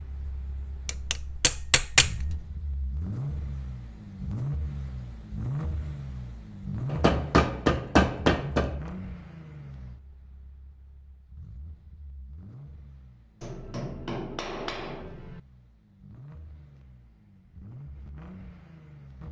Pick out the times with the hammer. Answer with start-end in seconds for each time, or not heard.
0.8-2.4, 6.9-8.8, 13.4-15.4.